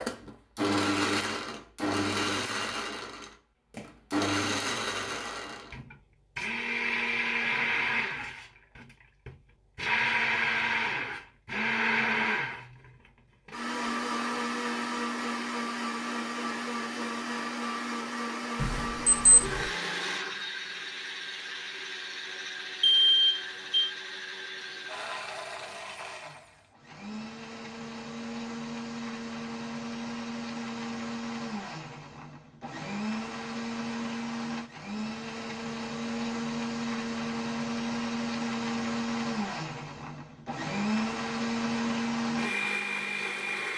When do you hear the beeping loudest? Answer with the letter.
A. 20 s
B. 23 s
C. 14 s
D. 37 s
B.